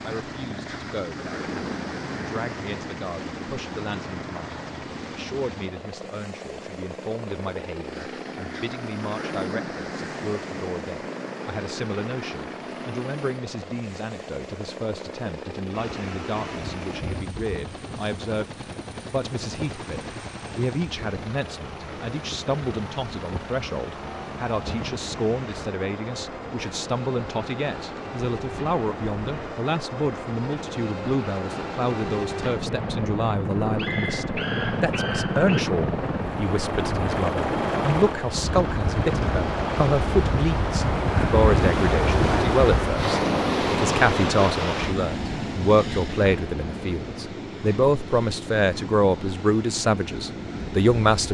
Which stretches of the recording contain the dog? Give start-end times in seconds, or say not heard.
33.6-35.5.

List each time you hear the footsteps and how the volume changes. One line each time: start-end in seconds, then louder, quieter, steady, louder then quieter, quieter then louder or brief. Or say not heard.
not heard.